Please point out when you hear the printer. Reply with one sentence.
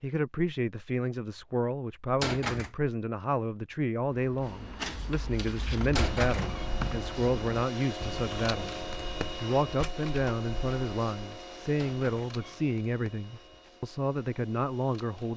You can hear the printer from 4.4 to 15.3 s.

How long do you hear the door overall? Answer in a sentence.
You can hear the door for 2 seconds altogether.